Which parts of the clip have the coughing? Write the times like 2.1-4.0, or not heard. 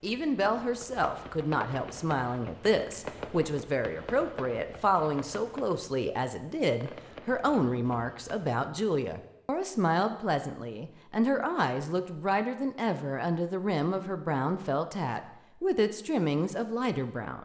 not heard.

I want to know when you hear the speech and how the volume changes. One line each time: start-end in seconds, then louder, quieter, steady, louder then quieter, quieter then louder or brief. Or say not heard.
0.0-17.4 steady.